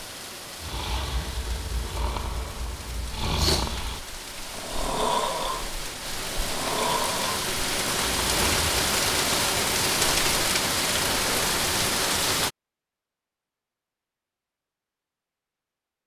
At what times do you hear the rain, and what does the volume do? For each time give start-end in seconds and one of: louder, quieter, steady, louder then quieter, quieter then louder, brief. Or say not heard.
0.0-12.5 louder.